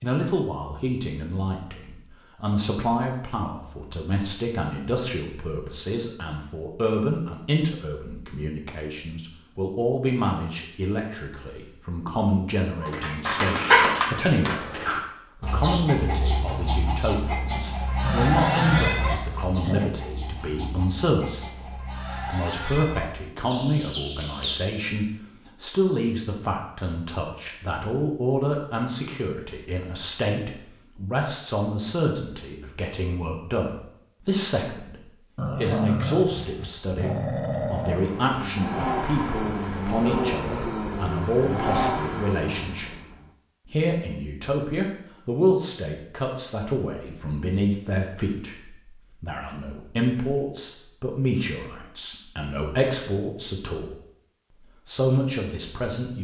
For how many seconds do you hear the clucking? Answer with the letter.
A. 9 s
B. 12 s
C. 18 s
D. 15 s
B.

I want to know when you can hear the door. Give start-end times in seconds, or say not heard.
not heard.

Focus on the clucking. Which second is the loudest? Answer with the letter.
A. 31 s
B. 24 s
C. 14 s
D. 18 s
C.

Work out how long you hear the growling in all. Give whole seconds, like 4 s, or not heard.
5 s.